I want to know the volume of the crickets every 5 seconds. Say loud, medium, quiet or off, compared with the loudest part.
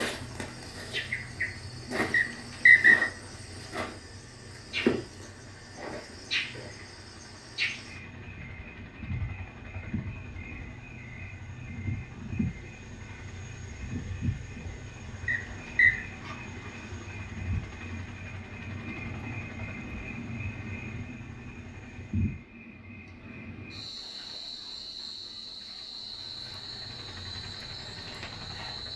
loud, medium, medium, medium, medium, medium.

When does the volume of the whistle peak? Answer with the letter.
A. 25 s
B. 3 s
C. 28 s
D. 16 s
B.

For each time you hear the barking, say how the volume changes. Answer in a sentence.
You can't hear the barking here.